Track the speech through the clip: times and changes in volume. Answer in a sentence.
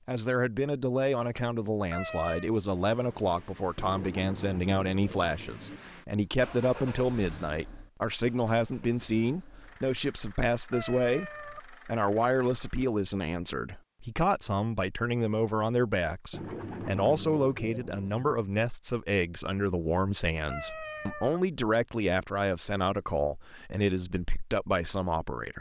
You can hear the speech from 0.1 to 25.5 s, at a steady volume.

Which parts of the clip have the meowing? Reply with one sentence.
You can hear the meowing from 1.9 to 2.5 s, from 10.7 to 11.6 s and from 20.4 to 21.4 s.